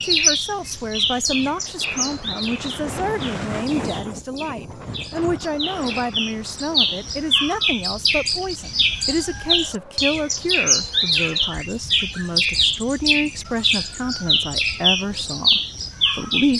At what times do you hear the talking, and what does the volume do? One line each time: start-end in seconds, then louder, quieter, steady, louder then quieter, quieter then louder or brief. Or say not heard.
0.0-16.5 steady.